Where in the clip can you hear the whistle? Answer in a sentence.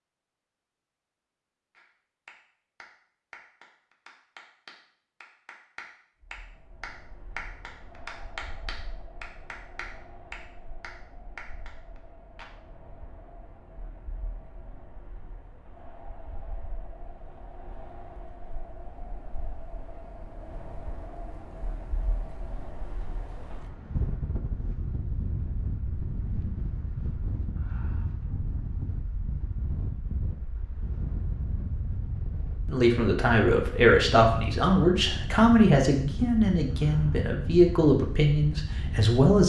The whistle can't be heard in this clip.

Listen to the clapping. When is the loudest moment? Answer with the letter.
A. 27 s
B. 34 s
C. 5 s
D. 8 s
D.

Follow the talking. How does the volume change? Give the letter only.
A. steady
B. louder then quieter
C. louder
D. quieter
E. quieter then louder
A.